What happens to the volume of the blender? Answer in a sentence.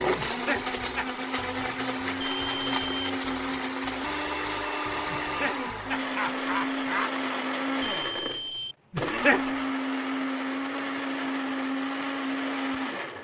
The loudness of the blender stays about the same.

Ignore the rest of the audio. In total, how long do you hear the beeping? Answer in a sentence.
You can hear the beeping for 2 seconds altogether.